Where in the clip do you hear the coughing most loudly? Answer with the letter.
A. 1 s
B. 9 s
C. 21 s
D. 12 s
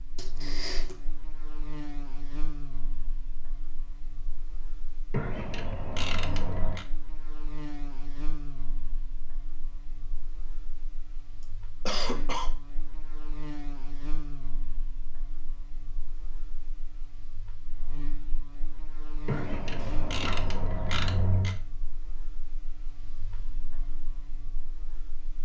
D.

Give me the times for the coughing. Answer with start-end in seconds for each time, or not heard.
0.1-0.9, 11.4-12.5, 19.8-20.5.